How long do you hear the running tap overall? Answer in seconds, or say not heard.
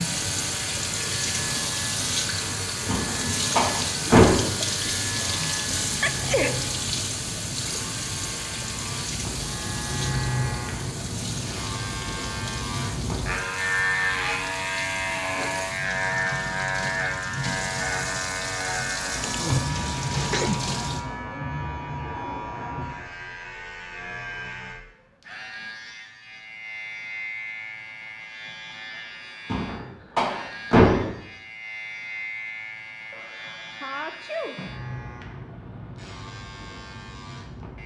21 s.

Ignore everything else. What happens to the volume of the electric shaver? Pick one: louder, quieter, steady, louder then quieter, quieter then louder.
louder then quieter.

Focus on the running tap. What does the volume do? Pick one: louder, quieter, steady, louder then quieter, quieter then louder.
quieter then louder.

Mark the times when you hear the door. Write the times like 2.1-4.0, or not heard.
2.9-4.5, 29.5-31.1.